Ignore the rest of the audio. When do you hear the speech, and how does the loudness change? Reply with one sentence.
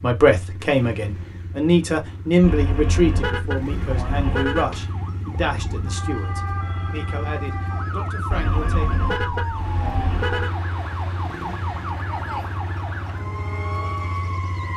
You can hear the speech from 0.0 to 8.9 s, getting quieter.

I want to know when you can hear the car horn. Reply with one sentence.
The car horn can be heard from 2.4 to 4.8 s and from 8.3 to 10.5 s.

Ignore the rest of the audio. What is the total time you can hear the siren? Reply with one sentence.
You can hear the siren for 11 seconds altogether.